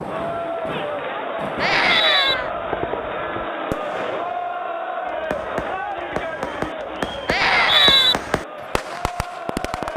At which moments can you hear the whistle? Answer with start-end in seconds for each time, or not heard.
1.8-2.4, 7.4-8.2.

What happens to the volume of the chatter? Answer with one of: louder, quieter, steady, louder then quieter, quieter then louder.
quieter.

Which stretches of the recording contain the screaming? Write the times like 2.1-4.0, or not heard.
1.6-2.5, 7.2-8.2.